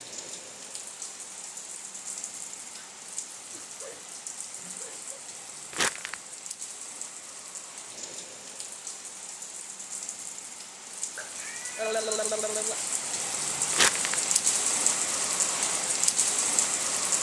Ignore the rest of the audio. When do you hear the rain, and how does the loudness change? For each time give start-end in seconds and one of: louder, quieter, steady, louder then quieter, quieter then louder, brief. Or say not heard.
0.0-17.1 louder.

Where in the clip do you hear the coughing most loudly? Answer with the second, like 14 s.
12 s.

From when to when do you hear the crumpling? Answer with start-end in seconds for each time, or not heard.
5.7-6.2, 13.7-14.2.